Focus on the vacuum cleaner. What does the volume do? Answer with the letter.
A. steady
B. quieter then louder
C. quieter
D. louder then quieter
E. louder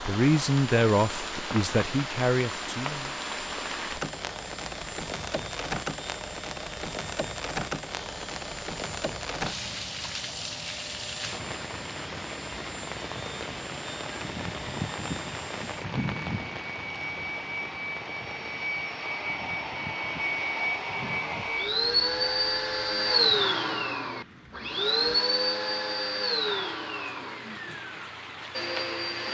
E.